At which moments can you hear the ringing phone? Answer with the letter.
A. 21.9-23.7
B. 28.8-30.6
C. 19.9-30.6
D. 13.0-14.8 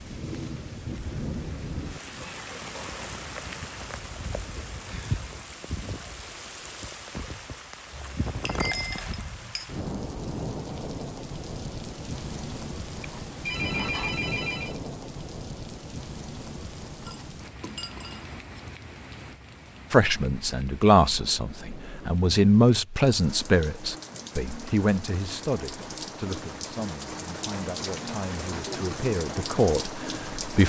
D.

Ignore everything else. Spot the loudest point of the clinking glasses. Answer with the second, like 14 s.
9 s.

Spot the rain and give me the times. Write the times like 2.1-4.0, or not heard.
0.0-30.6.